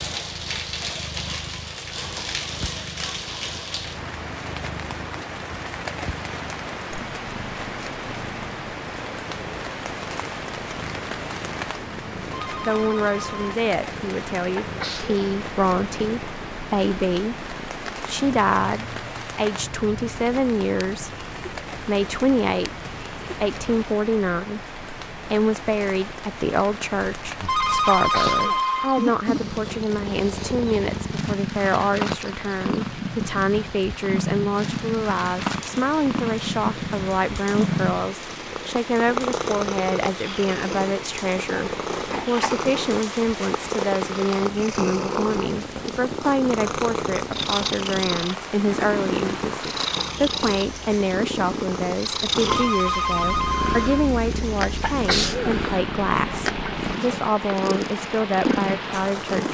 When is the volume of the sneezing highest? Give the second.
55 s.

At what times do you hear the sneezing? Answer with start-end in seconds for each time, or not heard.
14.6-15.2, 28.1-28.6, 54.8-55.5.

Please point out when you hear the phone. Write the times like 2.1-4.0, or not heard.
12.3-13.6, 27.4-29.1, 52.5-54.1.